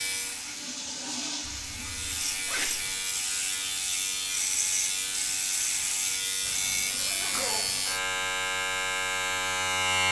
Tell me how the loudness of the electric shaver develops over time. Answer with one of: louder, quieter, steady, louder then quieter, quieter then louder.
louder.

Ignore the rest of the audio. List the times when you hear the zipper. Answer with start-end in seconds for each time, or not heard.
1.4-3.0, 6.4-8.0.